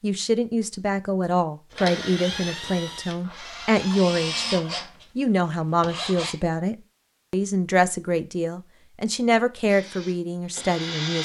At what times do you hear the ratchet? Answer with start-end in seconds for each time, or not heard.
not heard.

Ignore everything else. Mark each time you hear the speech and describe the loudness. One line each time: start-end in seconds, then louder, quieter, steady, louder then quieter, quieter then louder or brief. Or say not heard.
0.0-11.1 steady.